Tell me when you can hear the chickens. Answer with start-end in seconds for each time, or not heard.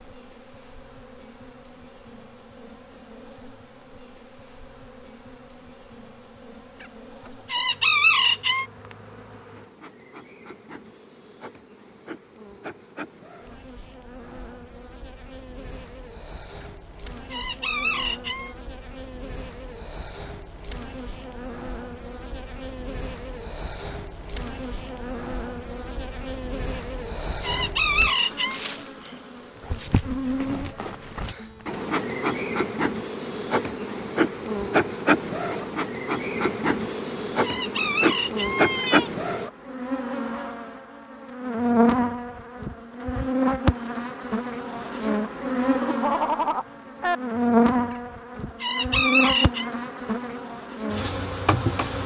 7.5-8.7, 17.3-18.6, 27.4-28.6, 37.4-39.1, 48.6-49.7.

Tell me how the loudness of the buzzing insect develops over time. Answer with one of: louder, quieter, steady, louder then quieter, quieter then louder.
louder.